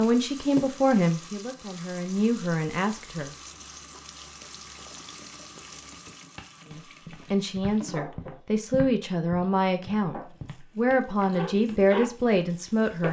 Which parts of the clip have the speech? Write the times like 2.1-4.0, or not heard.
0.0-3.3, 6.7-13.0.